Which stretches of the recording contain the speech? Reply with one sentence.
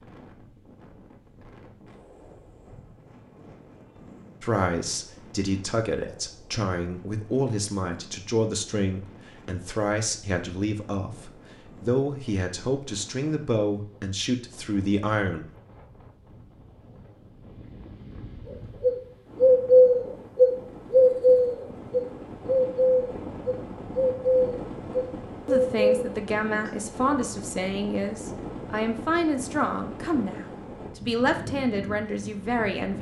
You can hear the speech from 4.4 to 15.5 s and from 25.4 to 32.9 s.